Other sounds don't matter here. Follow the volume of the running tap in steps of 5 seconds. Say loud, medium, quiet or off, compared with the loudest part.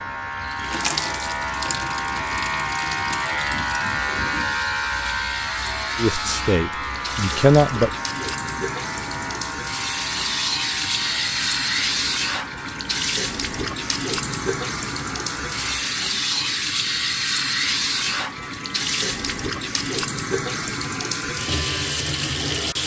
medium, medium, loud, loud, loud.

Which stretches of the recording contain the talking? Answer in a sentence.
You can hear the talking from 6.0 to 7.9 s.